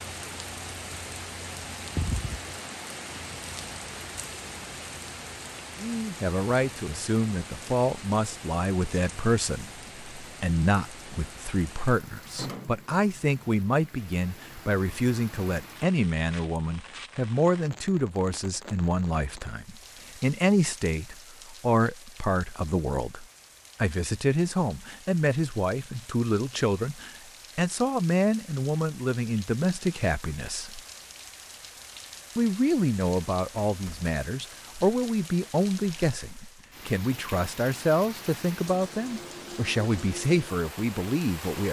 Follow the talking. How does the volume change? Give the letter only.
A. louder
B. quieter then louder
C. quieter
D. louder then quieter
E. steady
E.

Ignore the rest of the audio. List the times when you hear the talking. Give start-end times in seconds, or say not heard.
5.8-30.8, 32.4-41.6.